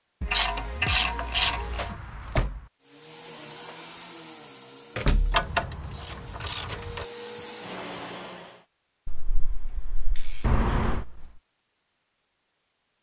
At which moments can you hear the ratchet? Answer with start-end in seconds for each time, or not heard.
0.2-1.9, 5.3-7.0, 9.1-11.2.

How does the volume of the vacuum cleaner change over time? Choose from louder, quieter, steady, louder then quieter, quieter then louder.
quieter then louder.